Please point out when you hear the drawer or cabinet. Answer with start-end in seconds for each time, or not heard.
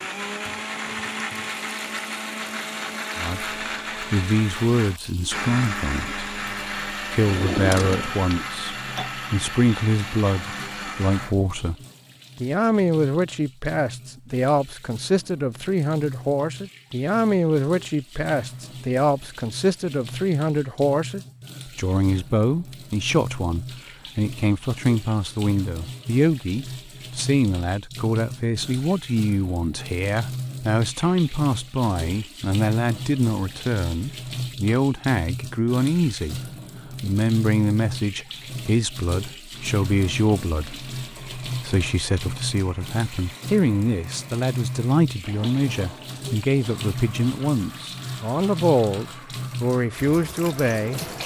7.2-8.5.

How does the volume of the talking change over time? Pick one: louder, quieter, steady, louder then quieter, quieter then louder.
steady.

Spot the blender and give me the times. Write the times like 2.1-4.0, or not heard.
0.0-11.3, 39.5-51.2.